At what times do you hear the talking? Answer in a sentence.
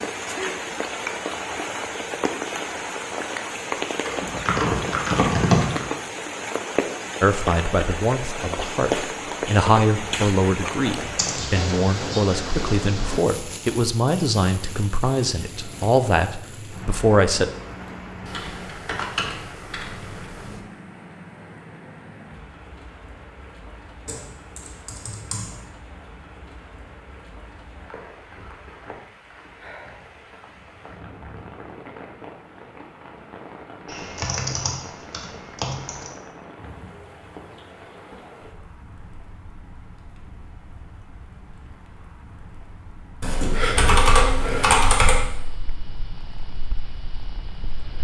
You can hear the talking from 7.2 to 17.5 s.